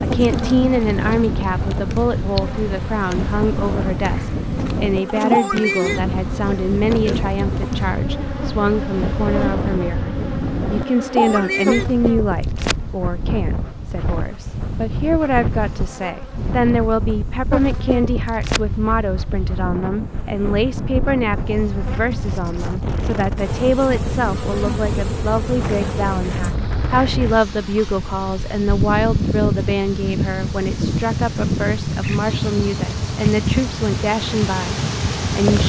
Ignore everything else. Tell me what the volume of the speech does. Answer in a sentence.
The volume of the speech stays about the same.